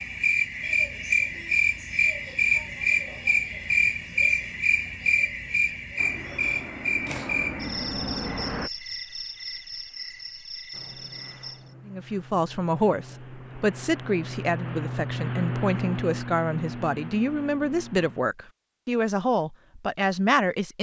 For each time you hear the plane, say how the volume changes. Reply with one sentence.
You can hear the plane briefly from 6.0 to 8.7 s; and from 10.7 to 18.2 s, getting louder then quieter.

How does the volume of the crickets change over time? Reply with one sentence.
The loudness of the crickets goes down.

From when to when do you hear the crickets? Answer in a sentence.
You can hear the crickets from 0.0 to 11.8 s.